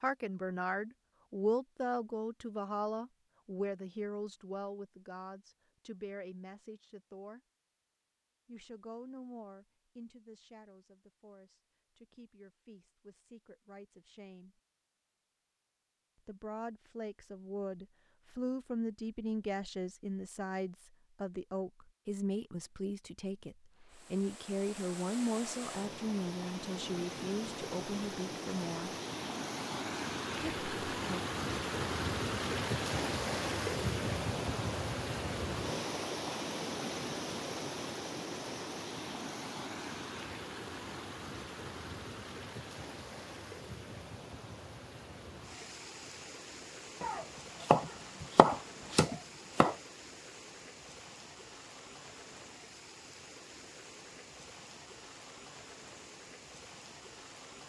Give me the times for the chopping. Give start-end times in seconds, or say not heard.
47.0-49.8.